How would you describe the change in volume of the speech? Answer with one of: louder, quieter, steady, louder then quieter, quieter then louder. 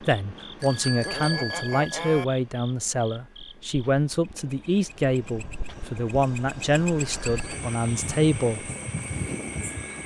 steady.